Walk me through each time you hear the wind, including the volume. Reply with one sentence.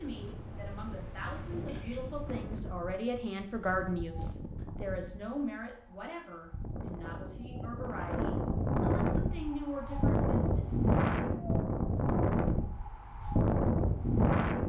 The wind can be heard from 0.0 to 14.6 s, getting louder.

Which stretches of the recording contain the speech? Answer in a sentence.
The speech can be heard from 0.0 to 11.0 s.